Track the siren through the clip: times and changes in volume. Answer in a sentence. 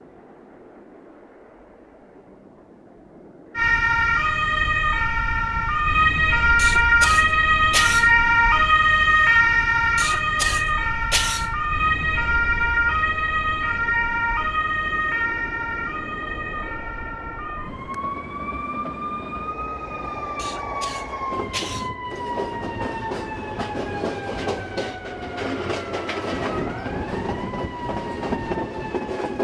You can hear the siren from 3.5 to 29.3 s, getting quieter.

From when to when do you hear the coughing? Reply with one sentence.
You can hear the coughing from 6.5 to 8.1 s, from 9.9 to 11.5 s and from 20.4 to 21.9 s.